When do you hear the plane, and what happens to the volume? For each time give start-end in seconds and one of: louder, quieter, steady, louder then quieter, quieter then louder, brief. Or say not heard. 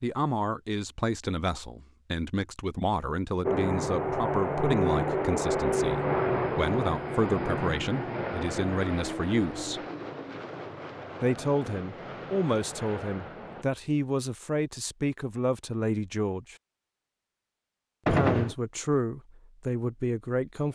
3.5-13.7 quieter.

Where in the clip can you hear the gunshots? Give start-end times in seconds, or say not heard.
18.1-18.6.